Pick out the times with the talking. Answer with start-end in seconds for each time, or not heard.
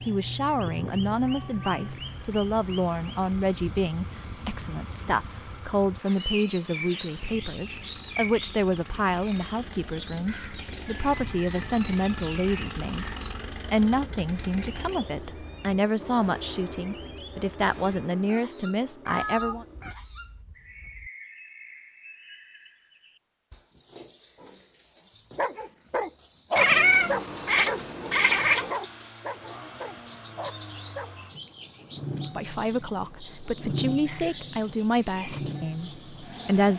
0.1-19.6, 32.4-36.7.